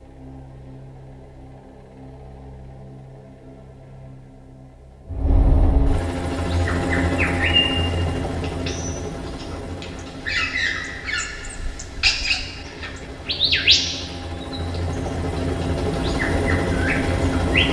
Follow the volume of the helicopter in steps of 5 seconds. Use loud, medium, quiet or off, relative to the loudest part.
quiet, loud, quiet, loud.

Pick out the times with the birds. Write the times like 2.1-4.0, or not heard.
6.3-17.6.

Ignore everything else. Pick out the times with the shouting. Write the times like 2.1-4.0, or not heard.
not heard.